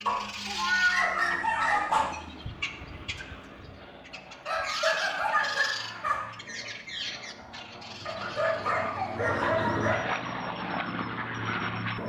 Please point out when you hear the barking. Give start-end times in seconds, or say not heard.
0.1-2.0, 4.5-6.3, 8.1-10.0.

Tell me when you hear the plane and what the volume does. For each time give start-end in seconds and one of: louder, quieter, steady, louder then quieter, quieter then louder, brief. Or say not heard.
0.0-12.0 louder.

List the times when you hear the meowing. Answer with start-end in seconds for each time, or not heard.
0.5-1.4.